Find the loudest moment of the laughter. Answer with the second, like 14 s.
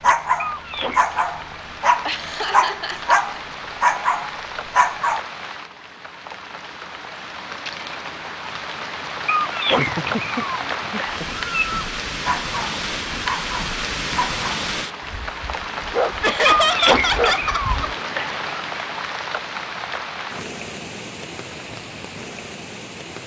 17 s.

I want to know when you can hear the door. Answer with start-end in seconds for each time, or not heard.
not heard.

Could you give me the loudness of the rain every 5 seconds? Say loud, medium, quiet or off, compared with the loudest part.
medium, medium, loud, loud, medium.